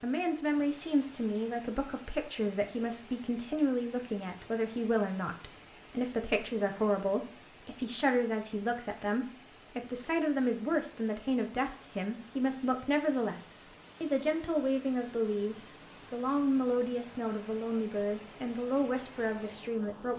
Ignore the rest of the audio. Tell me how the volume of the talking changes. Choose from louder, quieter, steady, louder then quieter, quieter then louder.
steady.